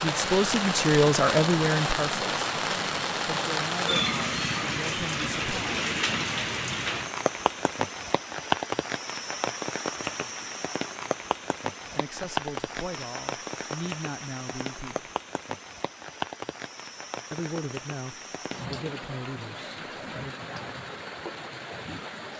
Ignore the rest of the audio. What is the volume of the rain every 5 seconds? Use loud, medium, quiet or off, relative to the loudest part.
loud, loud, medium, medium, medium.